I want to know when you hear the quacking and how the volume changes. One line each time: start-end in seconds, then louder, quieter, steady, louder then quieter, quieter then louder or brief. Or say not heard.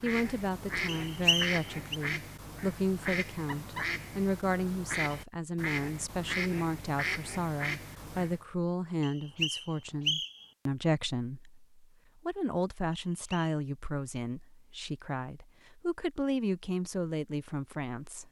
0.0-8.4 steady.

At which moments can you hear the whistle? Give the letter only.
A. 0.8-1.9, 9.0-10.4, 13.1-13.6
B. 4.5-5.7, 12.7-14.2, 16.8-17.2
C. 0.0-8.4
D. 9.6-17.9
A.